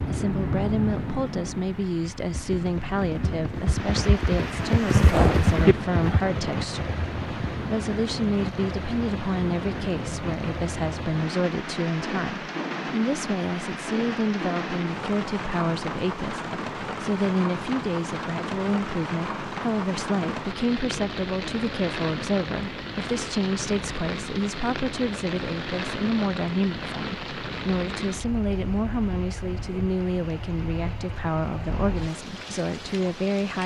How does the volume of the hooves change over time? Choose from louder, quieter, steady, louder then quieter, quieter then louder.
louder then quieter.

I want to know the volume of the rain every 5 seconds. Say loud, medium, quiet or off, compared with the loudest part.
loud, loud, loud, loud, loud, loud, medium.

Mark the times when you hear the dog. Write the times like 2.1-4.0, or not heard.
not heard.